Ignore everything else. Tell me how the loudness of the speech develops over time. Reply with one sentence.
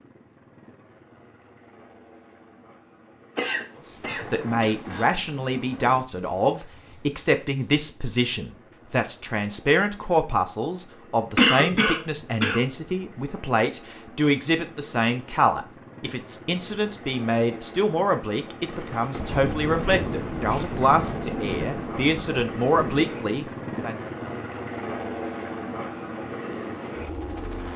The volume of the speech stays about the same.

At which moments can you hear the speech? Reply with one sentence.
You can hear the speech from 3.9 to 24.0 s.